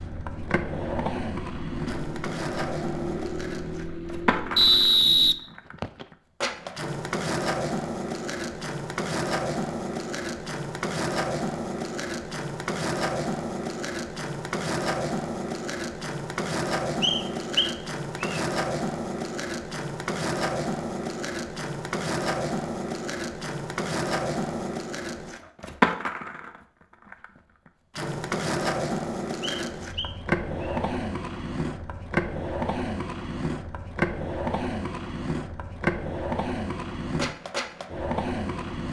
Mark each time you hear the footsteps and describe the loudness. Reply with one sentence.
The footsteps can't be heard in this clip.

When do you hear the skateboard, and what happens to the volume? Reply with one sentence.
You can hear the skateboard from 0.0 to 38.8 s, at a steady volume.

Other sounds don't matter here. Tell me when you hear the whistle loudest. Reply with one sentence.
The volume of the whistle peaks at 5 seconds.